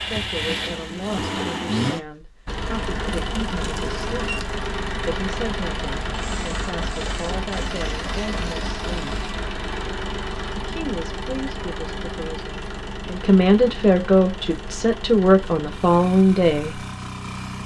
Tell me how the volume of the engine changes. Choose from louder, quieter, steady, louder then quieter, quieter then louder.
quieter.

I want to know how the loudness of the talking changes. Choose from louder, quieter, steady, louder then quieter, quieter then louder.
louder.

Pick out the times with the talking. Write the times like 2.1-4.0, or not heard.
0.0-9.2, 10.5-16.8.